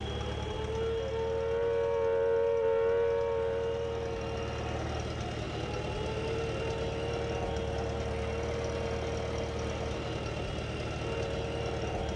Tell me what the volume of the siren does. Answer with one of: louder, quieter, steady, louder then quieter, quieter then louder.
quieter.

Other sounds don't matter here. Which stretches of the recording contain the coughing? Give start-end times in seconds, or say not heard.
not heard.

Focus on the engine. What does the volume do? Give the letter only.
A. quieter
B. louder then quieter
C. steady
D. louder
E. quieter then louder
D.